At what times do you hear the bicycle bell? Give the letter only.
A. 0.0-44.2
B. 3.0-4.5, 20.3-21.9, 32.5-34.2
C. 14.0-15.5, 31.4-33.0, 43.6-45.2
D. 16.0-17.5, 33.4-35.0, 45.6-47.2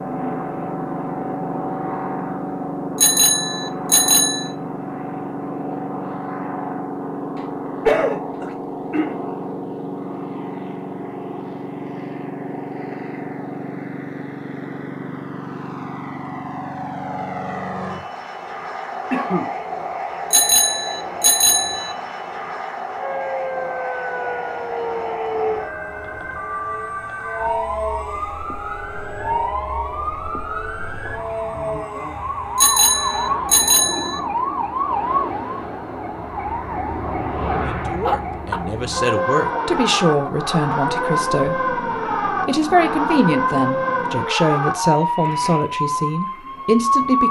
B.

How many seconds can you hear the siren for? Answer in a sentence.
You can hear the siren for 24 seconds altogether.